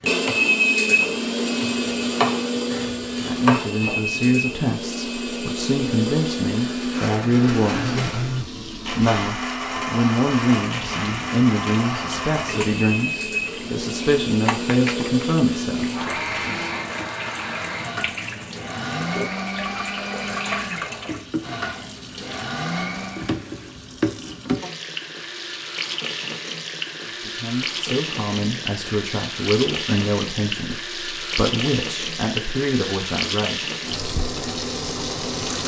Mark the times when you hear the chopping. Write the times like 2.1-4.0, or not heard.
0.0-4.2.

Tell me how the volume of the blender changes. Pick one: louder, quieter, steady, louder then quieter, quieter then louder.
quieter.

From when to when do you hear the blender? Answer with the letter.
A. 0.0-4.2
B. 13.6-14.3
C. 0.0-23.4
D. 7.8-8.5
C.